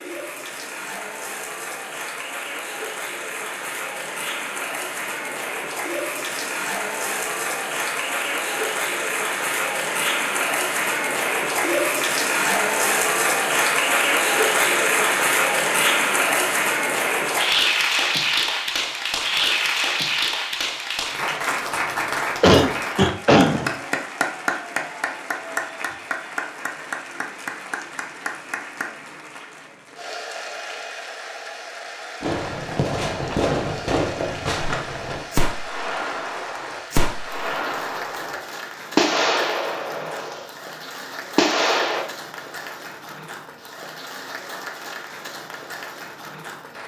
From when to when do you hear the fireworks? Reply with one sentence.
The fireworks can be heard from 32.2 to 40.5 s and from 41.4 to 42.0 s.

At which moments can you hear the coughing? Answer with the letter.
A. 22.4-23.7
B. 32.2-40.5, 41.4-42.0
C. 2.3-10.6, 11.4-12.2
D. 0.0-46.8
A.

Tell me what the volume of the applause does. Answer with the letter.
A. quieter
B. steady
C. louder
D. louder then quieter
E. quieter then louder
D.